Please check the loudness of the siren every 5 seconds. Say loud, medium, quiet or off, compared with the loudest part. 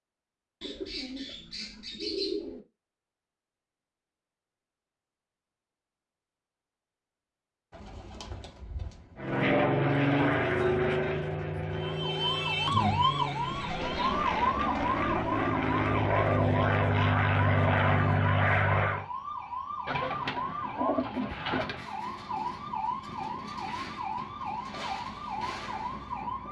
off, off, loud, medium, medium, medium.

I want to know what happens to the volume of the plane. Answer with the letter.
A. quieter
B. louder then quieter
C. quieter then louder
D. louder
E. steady
C.